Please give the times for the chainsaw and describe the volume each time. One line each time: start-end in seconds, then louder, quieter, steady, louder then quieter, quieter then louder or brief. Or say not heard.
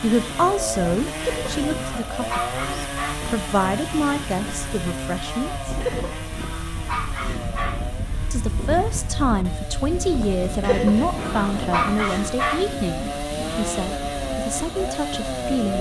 0.0-15.7 quieter then louder.